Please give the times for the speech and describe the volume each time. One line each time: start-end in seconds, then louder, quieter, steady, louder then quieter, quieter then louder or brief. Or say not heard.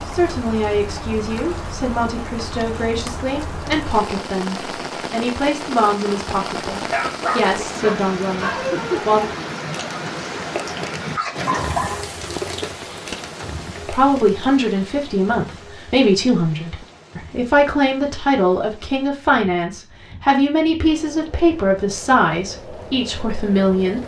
0.1-9.3 steady
13.8-24.0 steady.